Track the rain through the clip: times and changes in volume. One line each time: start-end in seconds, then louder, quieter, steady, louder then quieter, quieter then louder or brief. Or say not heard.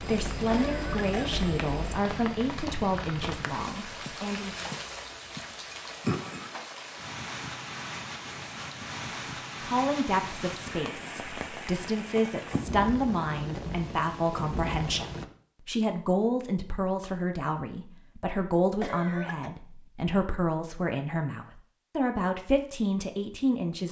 0.0-15.2 steady.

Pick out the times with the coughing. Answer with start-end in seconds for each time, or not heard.
0.5-1.4, 18.8-19.5.